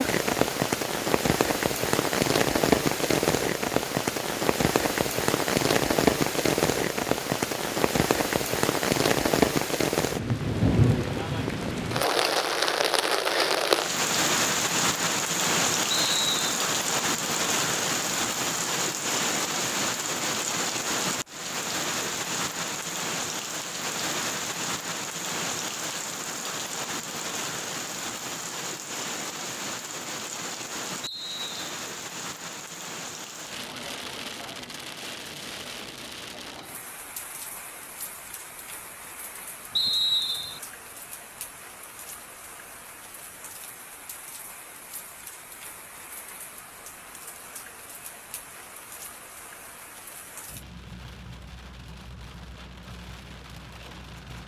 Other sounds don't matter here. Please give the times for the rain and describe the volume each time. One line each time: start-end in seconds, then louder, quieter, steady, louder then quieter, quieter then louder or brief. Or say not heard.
0.0-54.4 quieter.